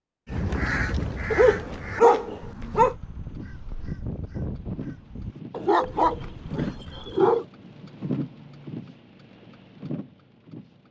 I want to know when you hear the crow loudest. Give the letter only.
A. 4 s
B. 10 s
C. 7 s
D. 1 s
D.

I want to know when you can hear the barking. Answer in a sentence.
You can hear the barking from 1.3 to 3.0 s and from 5.5 to 7.5 s.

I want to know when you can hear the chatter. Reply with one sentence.
The chatter can't be heard in this clip.